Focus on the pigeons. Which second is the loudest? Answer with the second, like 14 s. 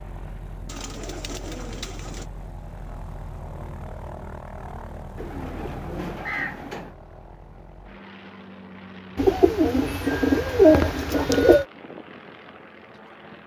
11 s.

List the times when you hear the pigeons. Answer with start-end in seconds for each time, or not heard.
0.7-2.2, 5.2-7.0, 9.2-11.7.